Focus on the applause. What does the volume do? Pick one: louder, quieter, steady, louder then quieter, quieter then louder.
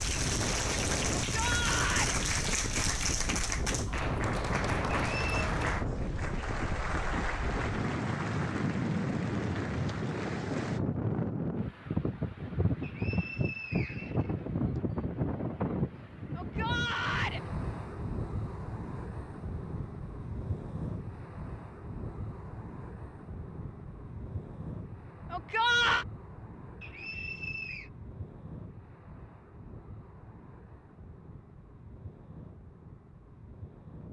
quieter.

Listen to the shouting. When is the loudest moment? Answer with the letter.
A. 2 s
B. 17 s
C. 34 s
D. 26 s
D.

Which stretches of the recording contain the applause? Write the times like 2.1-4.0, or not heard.
0.0-10.8.